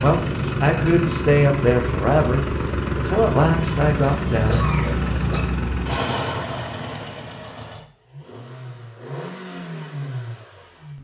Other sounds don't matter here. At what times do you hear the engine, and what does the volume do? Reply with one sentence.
You can hear the engine from 0.0 to 10.9 s, getting quieter.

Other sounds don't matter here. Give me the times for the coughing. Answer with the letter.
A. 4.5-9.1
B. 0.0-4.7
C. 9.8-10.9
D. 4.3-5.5
D.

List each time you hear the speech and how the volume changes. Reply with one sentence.
You can hear the speech from 0.0 to 4.7 s, at a steady volume.